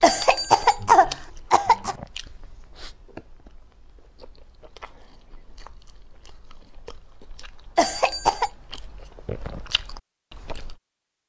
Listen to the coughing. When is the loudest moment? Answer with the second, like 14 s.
1 s.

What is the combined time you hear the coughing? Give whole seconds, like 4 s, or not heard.
3 s.